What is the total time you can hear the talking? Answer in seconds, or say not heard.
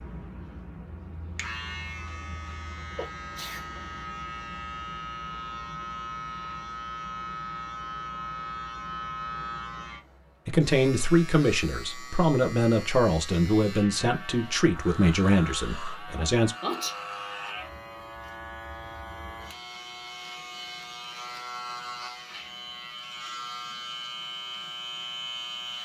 6 s.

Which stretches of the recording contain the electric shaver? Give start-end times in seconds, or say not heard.
0.0-25.8.